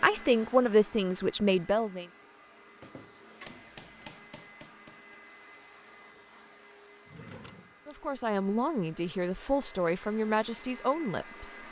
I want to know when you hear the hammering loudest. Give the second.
4 s.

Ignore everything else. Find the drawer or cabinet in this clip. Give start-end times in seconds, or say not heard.
3.4-4.1, 7.0-8.0.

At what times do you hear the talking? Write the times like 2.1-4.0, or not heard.
0.0-2.0, 7.8-11.6.